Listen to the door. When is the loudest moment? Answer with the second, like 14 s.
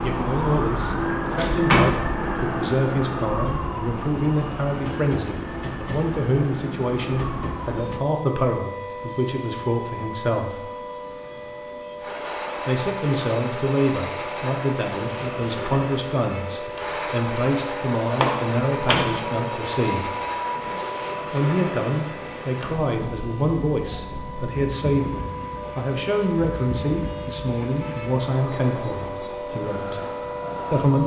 2 s.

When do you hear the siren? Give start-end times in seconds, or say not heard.
0.0-31.0.